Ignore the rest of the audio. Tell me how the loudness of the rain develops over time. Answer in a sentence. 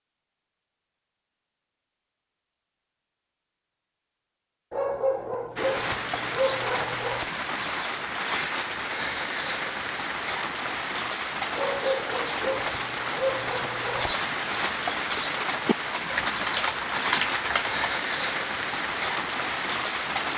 The volume of the rain stays about the same.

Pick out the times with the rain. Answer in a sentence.
You can hear the rain from 5.5 to 20.3 s.